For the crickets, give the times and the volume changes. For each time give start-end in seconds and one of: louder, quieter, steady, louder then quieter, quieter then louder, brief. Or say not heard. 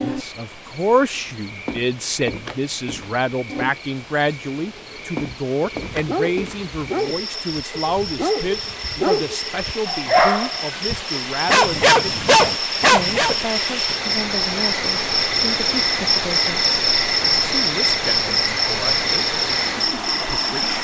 0.0-20.8 louder.